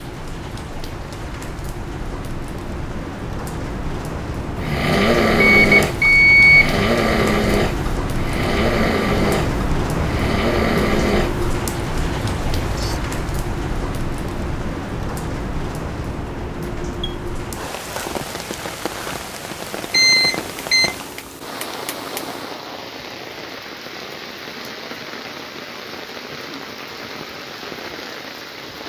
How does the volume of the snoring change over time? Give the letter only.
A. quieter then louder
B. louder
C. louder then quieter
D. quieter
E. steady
D.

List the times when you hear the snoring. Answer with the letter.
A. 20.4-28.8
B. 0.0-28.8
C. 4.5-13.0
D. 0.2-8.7
C.